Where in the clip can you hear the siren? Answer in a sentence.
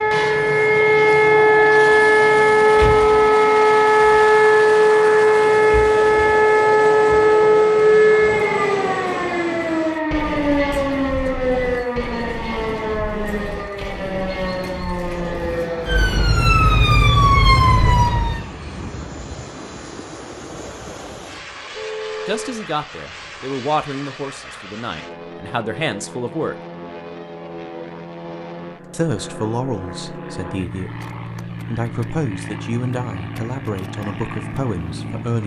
You can hear the siren from 0.0 to 18.4 s.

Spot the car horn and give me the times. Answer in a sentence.
The car horn can be heard from 21.7 to 22.6 s.